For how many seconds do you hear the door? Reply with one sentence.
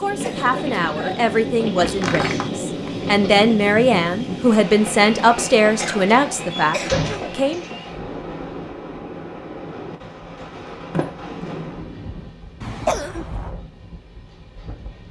The door can be heard for 4 seconds in total.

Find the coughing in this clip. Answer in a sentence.
You can hear the coughing from 0.2 to 1.3 s, from 5.8 to 7.3 s and from 12.6 to 13.5 s.